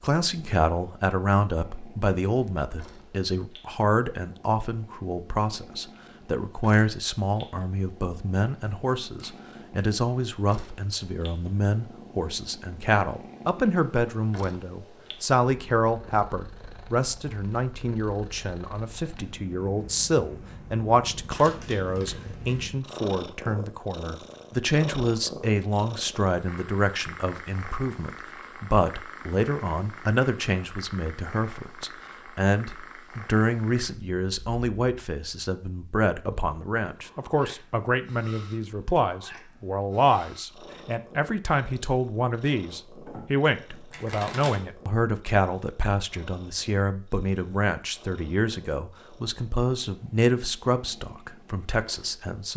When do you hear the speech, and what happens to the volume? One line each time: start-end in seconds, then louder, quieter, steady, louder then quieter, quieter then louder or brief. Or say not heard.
0.0-52.5 steady.